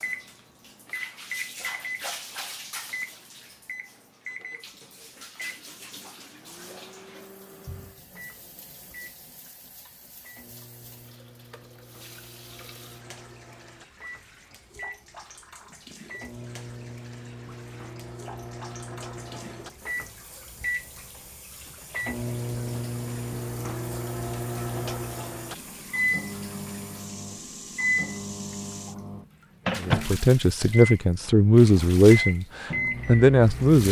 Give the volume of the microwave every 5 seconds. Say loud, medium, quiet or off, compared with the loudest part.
medium, quiet, quiet, medium, loud, loud, loud.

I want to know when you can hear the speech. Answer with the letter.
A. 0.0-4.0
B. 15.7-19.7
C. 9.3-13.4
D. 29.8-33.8
D.